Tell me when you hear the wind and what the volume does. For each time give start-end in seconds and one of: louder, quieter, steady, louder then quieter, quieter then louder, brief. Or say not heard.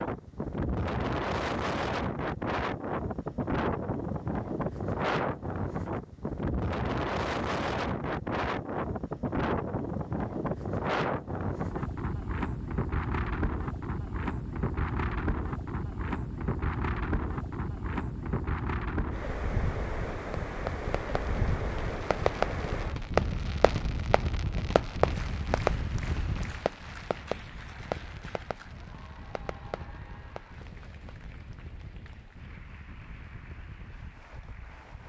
0.0-35.0 quieter.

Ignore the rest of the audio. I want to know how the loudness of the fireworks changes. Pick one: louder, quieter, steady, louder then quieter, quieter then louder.
quieter.